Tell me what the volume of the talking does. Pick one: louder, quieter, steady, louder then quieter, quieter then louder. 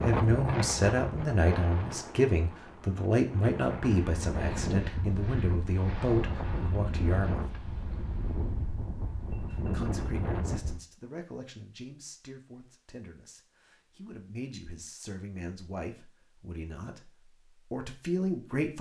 quieter then louder.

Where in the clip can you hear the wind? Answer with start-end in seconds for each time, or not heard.
0.0-10.8.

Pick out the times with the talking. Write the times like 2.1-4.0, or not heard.
0.0-7.4, 9.5-18.7.